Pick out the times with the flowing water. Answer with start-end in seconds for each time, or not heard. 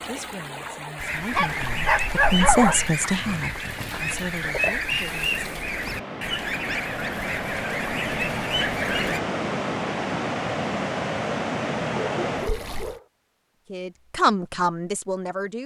0.0-13.0.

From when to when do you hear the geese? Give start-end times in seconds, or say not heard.
0.9-9.2.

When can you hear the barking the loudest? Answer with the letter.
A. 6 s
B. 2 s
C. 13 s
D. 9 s
B.